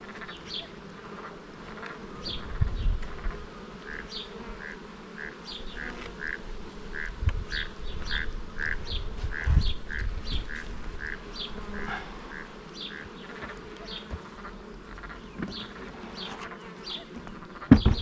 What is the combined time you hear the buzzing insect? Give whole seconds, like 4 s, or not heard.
18 s.